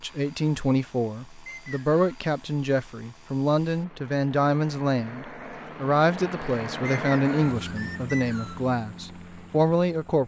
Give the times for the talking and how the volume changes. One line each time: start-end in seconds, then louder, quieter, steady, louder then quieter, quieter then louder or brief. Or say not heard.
0.0-10.2 steady.